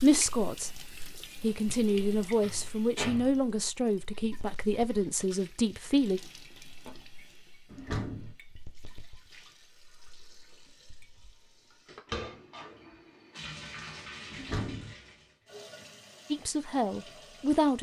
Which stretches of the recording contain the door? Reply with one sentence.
The door can be heard from 1.9 to 3.4 s, from 7.7 to 8.3 s and from 14.3 to 14.9 s.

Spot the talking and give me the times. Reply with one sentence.
The talking can be heard from 0.0 to 6.2 s and from 16.3 to 17.7 s.